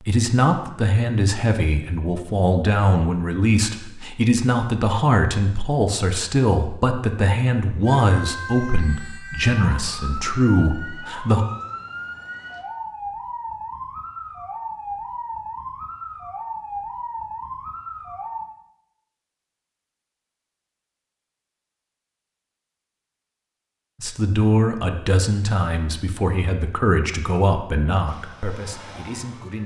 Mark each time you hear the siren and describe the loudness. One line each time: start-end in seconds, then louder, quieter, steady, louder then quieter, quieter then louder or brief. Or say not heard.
7.8-18.5 steady
28.1-29.6 brief.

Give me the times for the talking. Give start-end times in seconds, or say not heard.
0.0-11.4, 24.0-29.6.